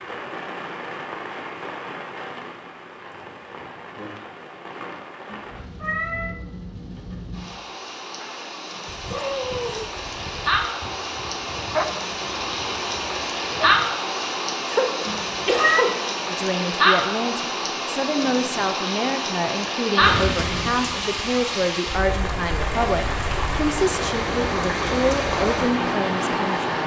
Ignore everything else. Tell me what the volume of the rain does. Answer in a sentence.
The loudness of the rain goes up.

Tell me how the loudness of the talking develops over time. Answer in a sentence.
The volume of the talking stays about the same.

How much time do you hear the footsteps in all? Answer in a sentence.
You can't hear the footsteps here.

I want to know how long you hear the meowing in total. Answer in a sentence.
The meowing can be heard for 2 seconds in total.